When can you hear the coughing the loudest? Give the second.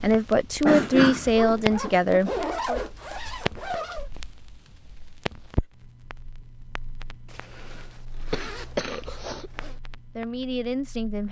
1 s.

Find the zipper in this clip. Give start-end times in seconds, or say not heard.
1.3-4.1, 7.2-9.8.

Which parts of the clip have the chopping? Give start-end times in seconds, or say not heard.
not heard.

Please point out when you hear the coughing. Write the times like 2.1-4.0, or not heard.
0.7-1.4, 8.3-9.5.